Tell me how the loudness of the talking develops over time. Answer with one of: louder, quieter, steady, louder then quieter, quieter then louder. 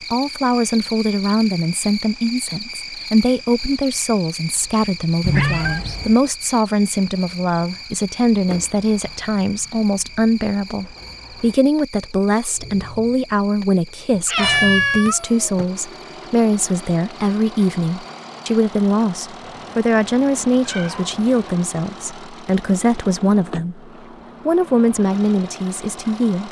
steady.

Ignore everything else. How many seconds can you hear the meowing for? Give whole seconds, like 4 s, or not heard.
5 s.